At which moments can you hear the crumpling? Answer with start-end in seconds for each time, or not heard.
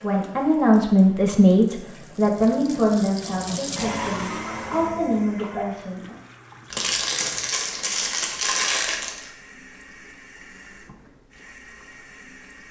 6.7-9.3.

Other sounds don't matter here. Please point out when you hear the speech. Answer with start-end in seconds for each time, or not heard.
0.0-6.2.